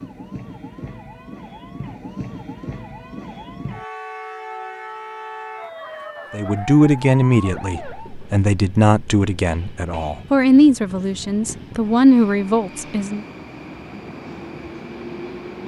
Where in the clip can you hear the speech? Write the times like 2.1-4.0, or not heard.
6.3-13.2.